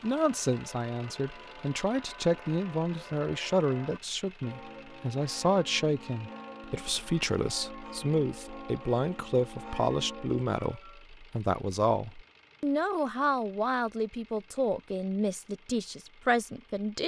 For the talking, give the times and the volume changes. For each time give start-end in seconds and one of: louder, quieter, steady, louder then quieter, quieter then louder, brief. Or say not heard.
0.0-17.0 steady.